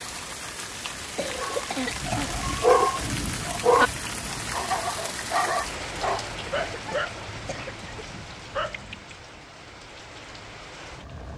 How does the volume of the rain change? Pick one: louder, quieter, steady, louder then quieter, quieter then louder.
quieter.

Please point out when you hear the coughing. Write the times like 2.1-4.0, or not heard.
1.1-2.4, 6.7-8.1.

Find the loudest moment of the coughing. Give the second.
2 s.